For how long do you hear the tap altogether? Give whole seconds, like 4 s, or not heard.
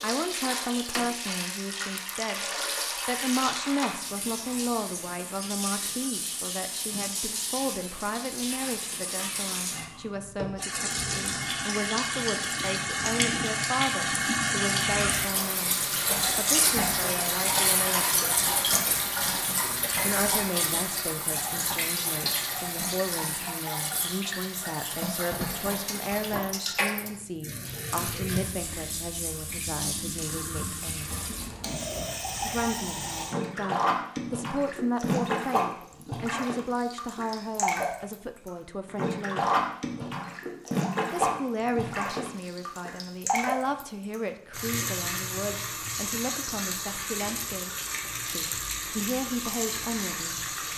51 s.